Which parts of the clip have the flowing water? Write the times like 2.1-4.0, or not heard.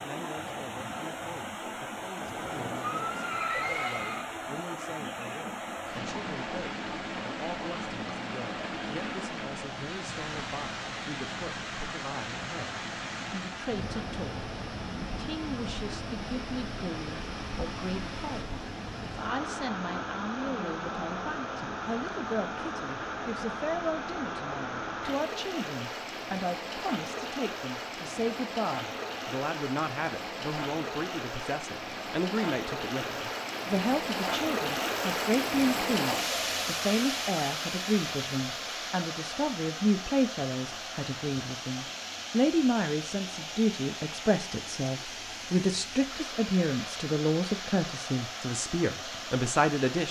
0.0-50.0.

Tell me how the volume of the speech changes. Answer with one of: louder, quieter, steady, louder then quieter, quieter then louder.
louder.